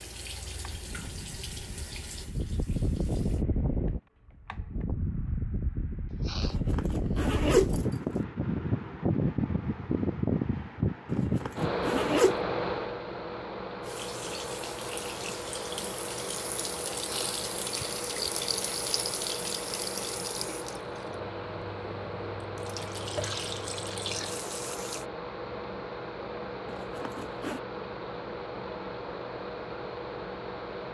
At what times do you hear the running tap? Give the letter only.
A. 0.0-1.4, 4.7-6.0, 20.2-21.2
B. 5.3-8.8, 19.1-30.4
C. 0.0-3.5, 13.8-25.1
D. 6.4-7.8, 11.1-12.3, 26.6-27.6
C.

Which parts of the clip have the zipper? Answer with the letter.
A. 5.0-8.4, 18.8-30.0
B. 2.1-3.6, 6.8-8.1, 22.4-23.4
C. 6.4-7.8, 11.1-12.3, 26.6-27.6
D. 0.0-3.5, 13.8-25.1
C.